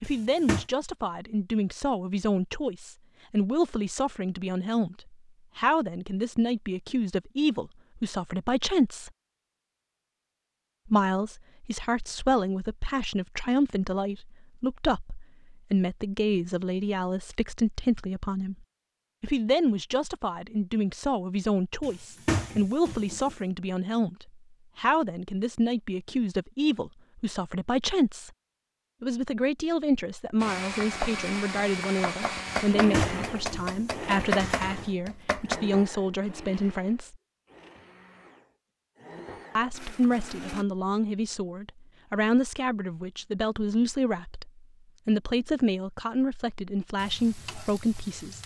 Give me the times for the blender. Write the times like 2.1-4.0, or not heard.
30.4-40.6.